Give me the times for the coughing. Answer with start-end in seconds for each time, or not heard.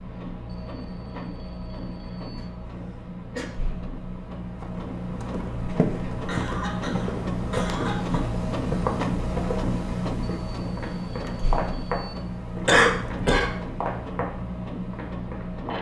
2.4-3.5, 5.5-8.2, 12.7-13.5.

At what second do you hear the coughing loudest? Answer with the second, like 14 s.
13 s.